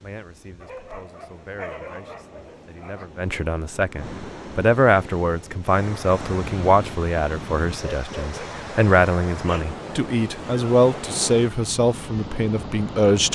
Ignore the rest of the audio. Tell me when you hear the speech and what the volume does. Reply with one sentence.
The speech can be heard from 0.0 to 13.2 s, getting louder.